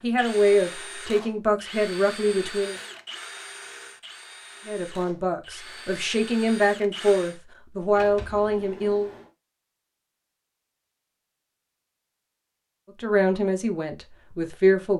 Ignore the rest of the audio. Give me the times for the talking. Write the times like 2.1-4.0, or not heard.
0.0-2.8, 4.7-9.1, 13.0-14.9.